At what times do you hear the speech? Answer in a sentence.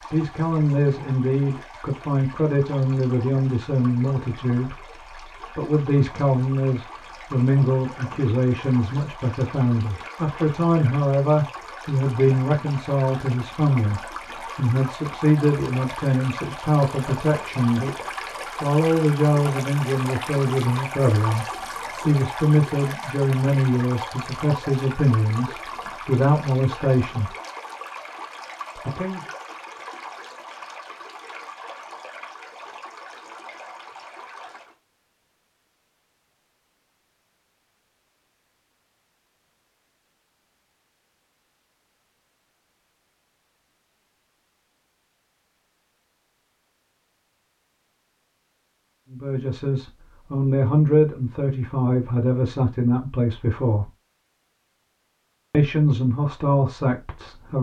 The speech can be heard from 0.1 to 27.4 s, from 28.8 to 29.2 s, from 49.1 to 53.9 s and from 55.5 to 57.5 s.